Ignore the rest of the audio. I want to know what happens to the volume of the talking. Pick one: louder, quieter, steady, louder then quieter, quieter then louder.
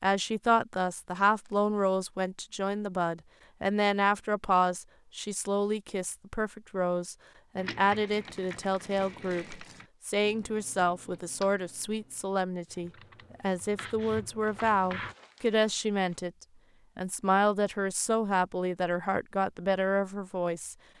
steady.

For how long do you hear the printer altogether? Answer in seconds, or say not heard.
not heard.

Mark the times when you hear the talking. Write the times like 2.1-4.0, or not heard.
0.0-16.3, 16.9-20.8.